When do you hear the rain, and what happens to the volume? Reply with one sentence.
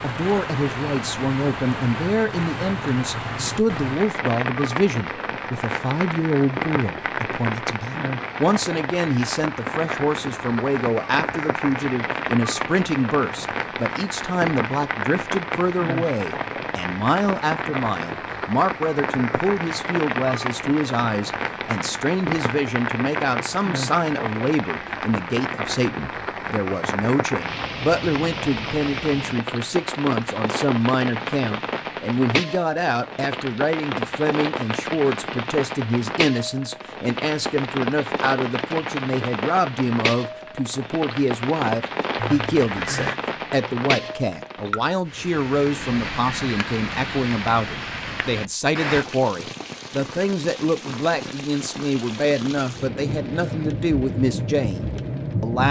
You can hear the rain from 0.0 to 55.6 s, at a steady volume.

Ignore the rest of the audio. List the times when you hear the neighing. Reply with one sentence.
You can hear the neighing from 42.1 to 43.2 s.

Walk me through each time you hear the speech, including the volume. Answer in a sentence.
You can hear the speech from 0.0 to 55.6 s, at a steady volume.